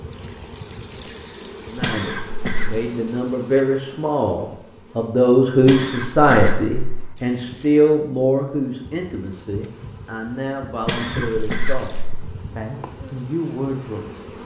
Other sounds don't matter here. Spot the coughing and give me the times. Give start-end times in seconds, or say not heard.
1.8-2.7, 5.6-7.1, 10.8-12.3.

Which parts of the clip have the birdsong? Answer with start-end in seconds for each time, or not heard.
not heard.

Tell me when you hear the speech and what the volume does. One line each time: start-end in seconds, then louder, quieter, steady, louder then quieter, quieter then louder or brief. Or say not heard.
1.6-14.2 louder then quieter.